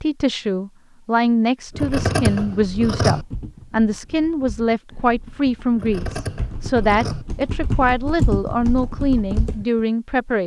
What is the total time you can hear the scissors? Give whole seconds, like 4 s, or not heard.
3 s.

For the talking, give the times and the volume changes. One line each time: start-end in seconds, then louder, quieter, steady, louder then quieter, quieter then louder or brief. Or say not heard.
0.0-10.4 steady.